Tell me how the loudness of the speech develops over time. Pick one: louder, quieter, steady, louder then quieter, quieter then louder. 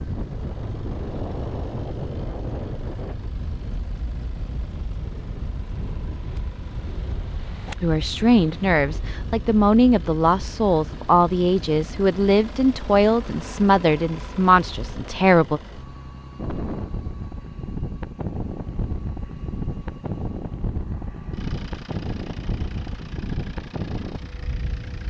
steady.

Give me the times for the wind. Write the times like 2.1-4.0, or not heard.
0.0-25.0.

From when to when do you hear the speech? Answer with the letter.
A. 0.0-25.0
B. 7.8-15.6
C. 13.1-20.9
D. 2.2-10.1
B.